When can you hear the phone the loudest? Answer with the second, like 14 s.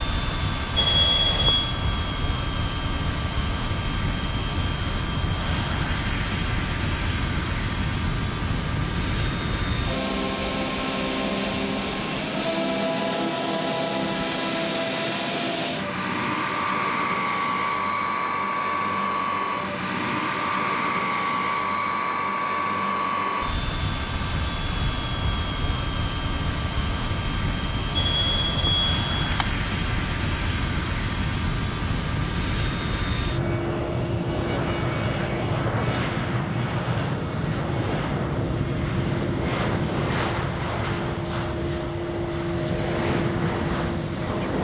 1 s.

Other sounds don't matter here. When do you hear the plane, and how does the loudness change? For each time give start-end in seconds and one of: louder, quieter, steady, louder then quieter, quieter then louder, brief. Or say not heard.
0.0-44.5 steady.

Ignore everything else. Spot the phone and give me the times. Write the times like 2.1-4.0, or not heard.
0.8-1.8, 27.9-29.5.